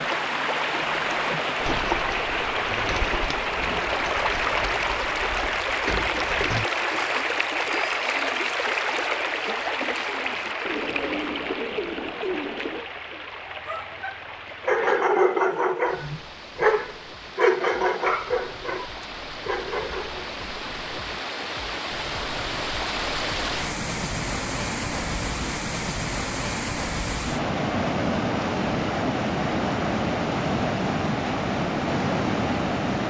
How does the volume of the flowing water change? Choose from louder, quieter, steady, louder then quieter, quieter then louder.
quieter then louder.